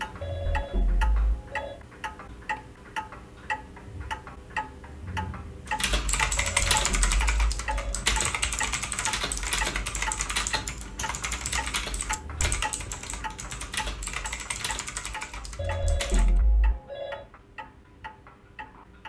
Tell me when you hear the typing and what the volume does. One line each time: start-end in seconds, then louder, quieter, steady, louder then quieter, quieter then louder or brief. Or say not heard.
5.7-16.3 quieter.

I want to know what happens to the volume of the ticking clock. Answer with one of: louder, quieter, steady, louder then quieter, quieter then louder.
quieter.